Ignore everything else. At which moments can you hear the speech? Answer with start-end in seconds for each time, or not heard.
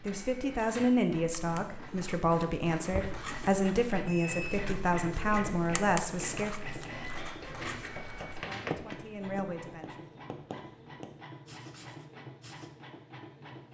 0.1-6.6, 8.3-10.1.